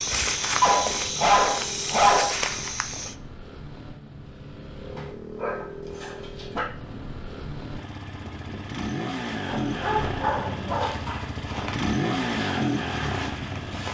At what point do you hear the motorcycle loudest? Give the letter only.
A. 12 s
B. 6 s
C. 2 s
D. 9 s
A.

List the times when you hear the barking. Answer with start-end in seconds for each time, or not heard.
0.6-2.5, 5.0-6.7, 9.4-11.2.